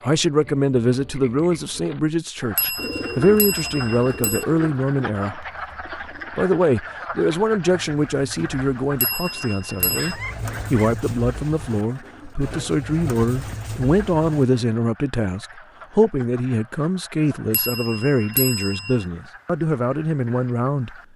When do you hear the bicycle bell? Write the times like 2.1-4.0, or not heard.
2.5-4.5, 9.0-10.2, 17.5-19.1.